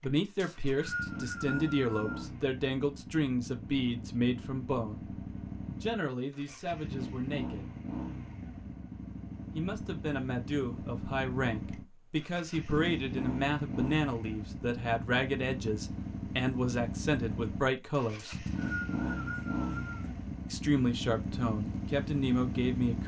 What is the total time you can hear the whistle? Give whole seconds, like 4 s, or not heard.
4 s.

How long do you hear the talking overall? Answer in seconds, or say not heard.
19 s.